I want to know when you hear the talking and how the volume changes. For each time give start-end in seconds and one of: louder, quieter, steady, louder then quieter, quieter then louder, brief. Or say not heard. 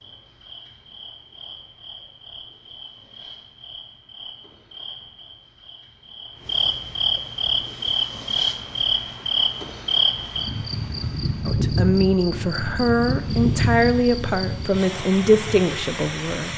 11.4-16.5 steady.